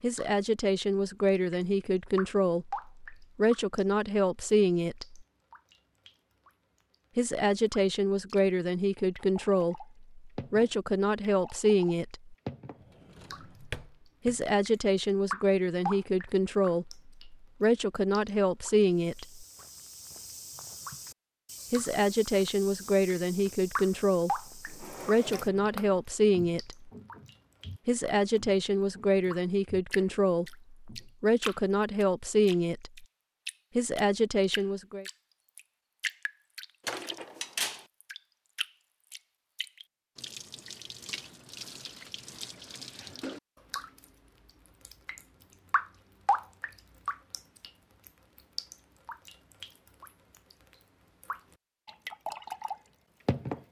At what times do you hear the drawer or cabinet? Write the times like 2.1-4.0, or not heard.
12.8-14.4, 24.6-25.9, 36.8-37.9.